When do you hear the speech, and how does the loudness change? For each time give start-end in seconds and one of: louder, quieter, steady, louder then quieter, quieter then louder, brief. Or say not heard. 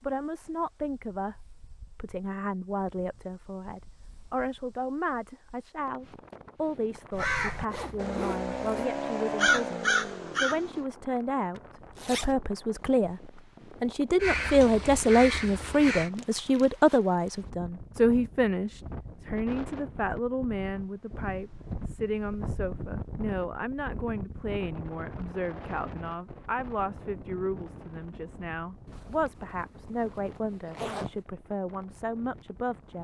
0.0-33.0 louder then quieter.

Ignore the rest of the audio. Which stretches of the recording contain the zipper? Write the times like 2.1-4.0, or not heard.
7.7-8.9, 11.6-12.3, 28.9-31.1.